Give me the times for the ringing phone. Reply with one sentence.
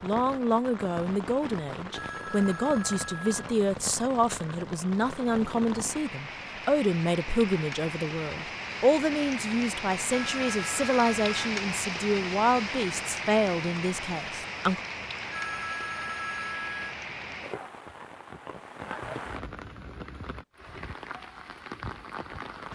You can hear the ringing phone from 1.9 to 3.4 s, from 10.1 to 11.5 s and from 15.3 to 16.9 s.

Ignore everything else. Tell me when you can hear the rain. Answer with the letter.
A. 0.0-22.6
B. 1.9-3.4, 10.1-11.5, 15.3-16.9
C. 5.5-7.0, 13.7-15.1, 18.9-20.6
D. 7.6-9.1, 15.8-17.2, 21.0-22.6
A.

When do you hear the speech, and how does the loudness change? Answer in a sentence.
The speech can be heard from 0.0 to 14.8 s, at a steady volume.